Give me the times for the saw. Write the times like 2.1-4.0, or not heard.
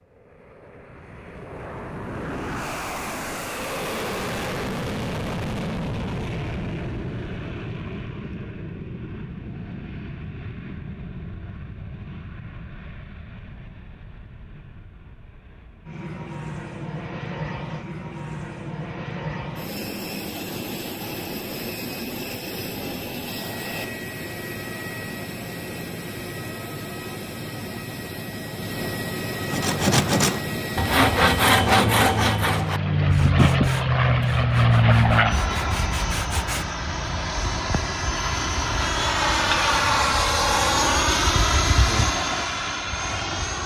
29.4-36.7.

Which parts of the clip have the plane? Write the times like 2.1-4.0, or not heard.
0.1-43.6.